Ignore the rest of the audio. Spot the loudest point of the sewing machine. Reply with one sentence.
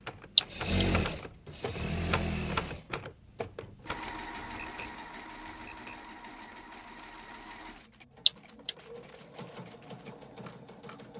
The loudest moment of the sewing machine is at 1 second.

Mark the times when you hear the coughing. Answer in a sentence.
You can hear the coughing from 0.3 to 0.8 s and from 8.2 to 8.8 s.